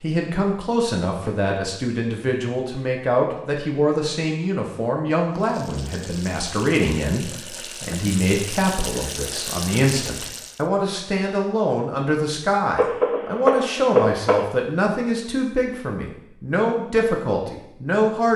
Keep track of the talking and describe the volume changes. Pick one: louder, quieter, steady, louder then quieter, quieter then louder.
steady.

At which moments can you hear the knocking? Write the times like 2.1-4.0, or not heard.
1.1-1.6, 12.8-14.4.